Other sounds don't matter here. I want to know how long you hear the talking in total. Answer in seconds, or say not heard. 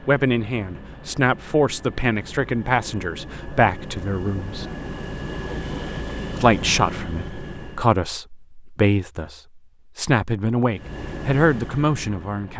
11 s.